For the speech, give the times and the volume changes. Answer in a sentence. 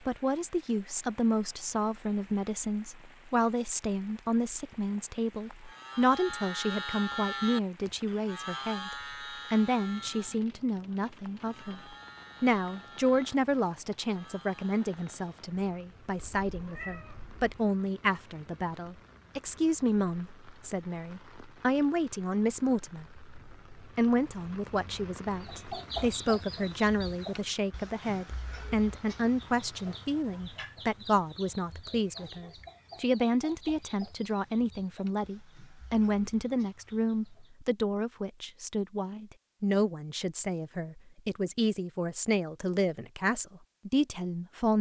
The speech can be heard from 0.1 to 11.8 s, at a steady volume; and from 12.4 to 44.7 s, at a steady volume.